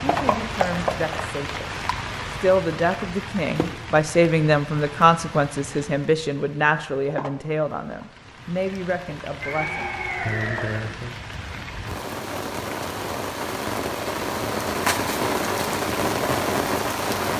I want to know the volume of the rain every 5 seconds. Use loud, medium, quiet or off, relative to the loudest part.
medium, quiet, medium, loud.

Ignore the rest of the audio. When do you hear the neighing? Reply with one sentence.
The neighing can be heard from 9.4 to 10.8 s.